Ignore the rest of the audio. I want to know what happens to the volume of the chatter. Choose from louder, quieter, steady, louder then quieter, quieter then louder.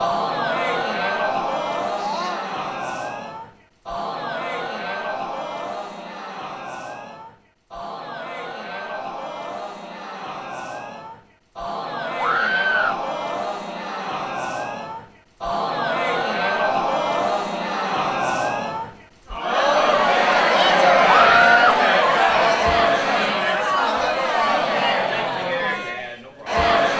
quieter then louder.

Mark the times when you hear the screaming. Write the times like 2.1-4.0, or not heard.
1.9-2.5, 12.2-13.0, 21.1-21.9.